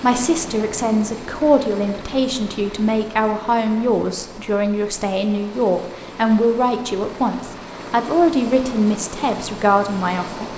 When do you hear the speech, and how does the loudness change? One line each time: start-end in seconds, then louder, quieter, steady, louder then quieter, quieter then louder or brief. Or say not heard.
0.0-10.5 steady.